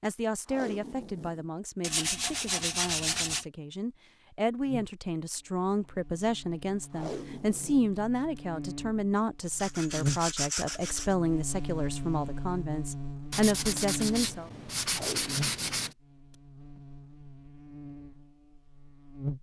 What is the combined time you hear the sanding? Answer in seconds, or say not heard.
6 s.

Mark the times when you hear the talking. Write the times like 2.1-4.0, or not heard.
0.0-14.5.